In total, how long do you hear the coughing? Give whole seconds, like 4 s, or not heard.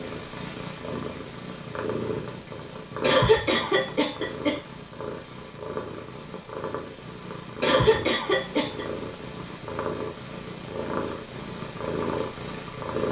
3 s.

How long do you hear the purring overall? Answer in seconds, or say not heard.
13 s.